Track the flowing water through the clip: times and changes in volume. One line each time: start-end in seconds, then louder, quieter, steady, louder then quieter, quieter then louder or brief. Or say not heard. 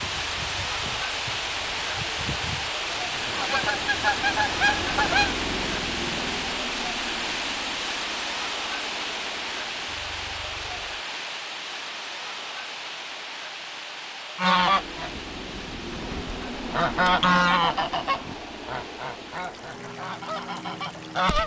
0.0-21.4 quieter.